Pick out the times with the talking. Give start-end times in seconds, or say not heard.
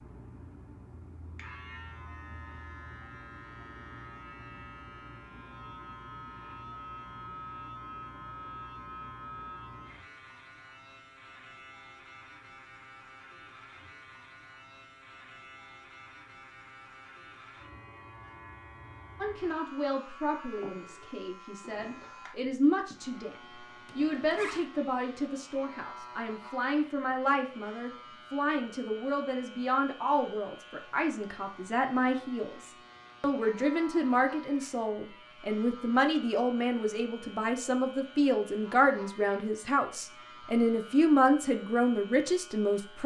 19.1-23.4, 23.9-43.0.